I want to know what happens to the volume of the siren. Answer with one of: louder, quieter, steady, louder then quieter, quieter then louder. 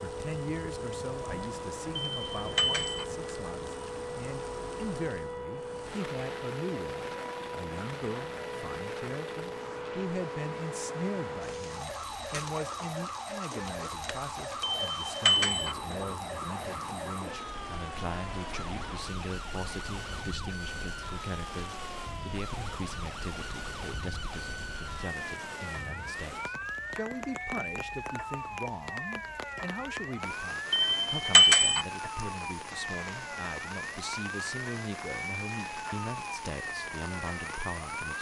steady.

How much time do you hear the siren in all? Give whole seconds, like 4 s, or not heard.
38 s.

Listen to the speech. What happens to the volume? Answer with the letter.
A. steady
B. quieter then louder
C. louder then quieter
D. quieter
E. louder
A.